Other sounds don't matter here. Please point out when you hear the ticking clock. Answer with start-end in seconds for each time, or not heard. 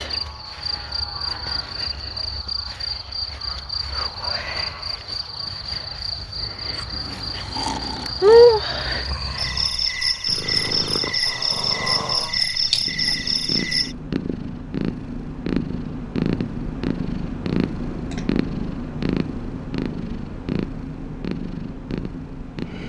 not heard.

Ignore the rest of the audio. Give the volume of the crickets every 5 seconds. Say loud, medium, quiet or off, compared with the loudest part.
medium, loud, loud, off, off.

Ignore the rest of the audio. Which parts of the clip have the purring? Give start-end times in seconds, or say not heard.
10.2-22.8.